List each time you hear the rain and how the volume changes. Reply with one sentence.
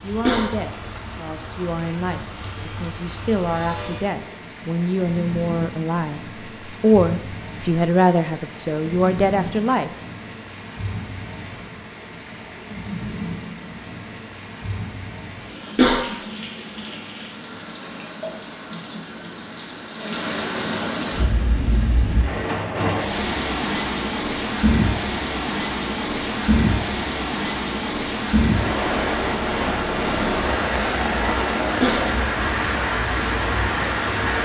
You can hear the rain from 0.0 to 34.4 s, getting louder.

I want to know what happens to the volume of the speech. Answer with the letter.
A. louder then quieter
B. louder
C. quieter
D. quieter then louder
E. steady
B.